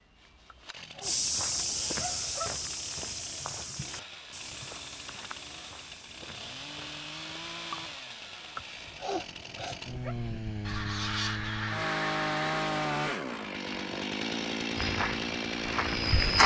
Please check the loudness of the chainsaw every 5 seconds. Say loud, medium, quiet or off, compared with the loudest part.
quiet, medium, loud, loud.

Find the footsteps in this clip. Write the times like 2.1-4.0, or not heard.
1.0-8.0, 14.8-16.4.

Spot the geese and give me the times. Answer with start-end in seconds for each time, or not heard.
10.7-12.5.